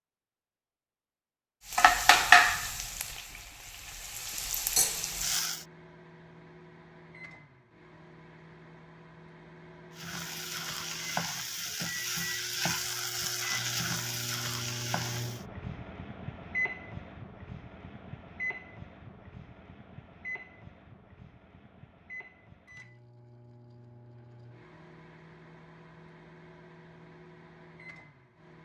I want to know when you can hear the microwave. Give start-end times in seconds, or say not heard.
4.8-28.6.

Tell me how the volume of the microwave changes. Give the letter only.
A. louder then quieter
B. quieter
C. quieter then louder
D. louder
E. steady
A.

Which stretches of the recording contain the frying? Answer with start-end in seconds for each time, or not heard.
1.7-5.7, 9.9-15.4.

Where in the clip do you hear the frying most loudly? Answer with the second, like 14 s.
2 s.